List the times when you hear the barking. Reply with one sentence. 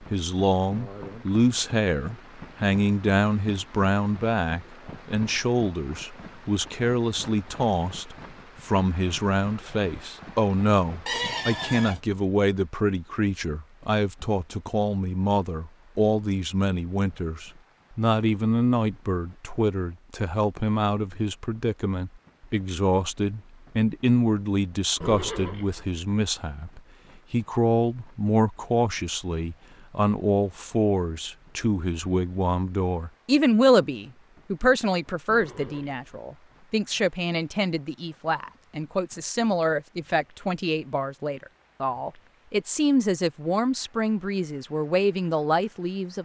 The barking can't be heard in this clip.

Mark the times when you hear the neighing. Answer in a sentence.
You can hear the neighing from 11.1 to 12.0 s, from 25.0 to 25.9 s and from 35.2 to 36.0 s.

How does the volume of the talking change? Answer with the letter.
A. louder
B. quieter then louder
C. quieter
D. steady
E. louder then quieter
D.